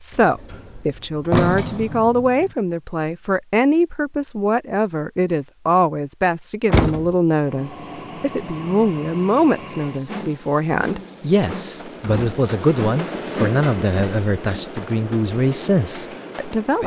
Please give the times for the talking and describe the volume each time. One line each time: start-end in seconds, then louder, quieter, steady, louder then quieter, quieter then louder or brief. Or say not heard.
0.0-16.8 steady.